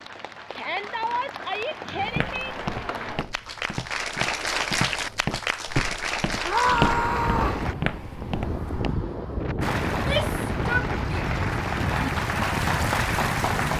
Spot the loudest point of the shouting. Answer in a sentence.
The volume of the shouting peaks at 7 seconds.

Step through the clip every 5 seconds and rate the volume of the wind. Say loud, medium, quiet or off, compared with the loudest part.
off, loud, loud.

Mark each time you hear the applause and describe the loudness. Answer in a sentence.
The applause can be heard from 0.0 to 7.8 s, getting louder; and from 9.6 to 13.7 s, getting louder.